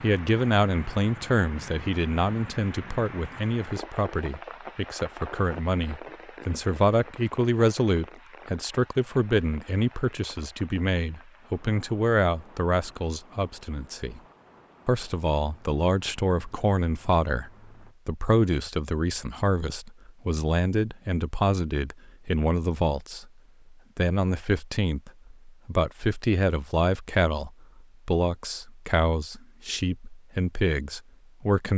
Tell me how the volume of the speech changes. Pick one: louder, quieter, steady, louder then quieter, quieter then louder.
steady.